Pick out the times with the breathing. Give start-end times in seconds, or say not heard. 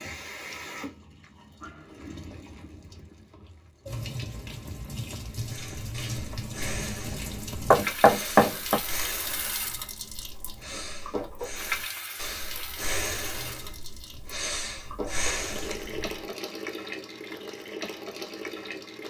5.3-16.2.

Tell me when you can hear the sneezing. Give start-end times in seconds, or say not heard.
not heard.